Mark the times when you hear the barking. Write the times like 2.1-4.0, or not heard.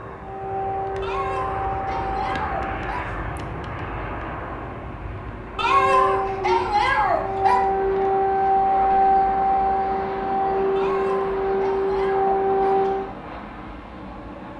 1.0-3.0, 5.5-7.6, 10.8-12.8.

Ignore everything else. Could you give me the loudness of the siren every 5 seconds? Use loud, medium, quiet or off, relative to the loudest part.
medium, loud, loud.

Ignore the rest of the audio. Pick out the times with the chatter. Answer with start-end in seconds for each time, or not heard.
not heard.